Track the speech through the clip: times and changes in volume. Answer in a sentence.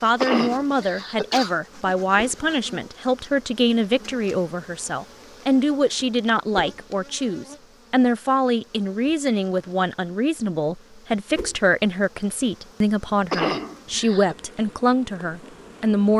The speech can be heard from 0.0 to 16.1 s, at a steady volume.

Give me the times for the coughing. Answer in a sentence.
The coughing can be heard from 0.2 to 1.6 s and from 13.3 to 14.3 s.